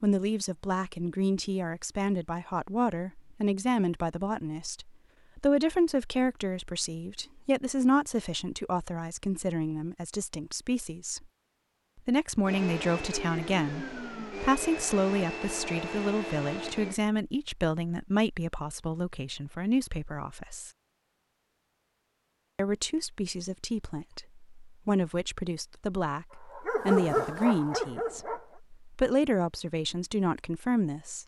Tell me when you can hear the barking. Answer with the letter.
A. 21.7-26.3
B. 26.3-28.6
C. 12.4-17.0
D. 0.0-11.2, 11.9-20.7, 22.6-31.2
B.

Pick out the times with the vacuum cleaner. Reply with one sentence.
The vacuum cleaner can be heard from 12.4 to 17.0 s.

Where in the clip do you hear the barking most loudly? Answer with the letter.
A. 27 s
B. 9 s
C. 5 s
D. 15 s
A.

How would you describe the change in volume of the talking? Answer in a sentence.
The volume of the talking stays about the same.